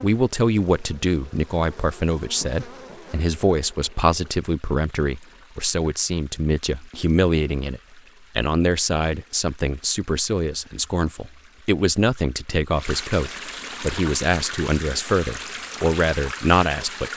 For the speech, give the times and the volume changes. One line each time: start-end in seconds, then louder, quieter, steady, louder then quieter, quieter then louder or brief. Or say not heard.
0.0-17.1 steady.